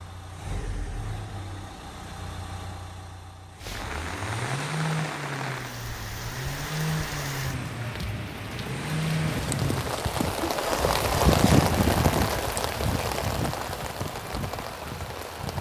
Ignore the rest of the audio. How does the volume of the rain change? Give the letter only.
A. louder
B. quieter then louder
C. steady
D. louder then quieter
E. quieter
D.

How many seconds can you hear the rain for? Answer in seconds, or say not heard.
12 s.